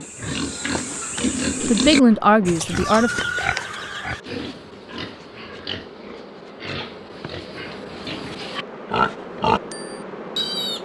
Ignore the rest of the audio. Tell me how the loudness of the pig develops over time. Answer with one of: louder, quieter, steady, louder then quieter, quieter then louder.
quieter then louder.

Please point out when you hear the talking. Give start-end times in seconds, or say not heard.
1.6-3.1.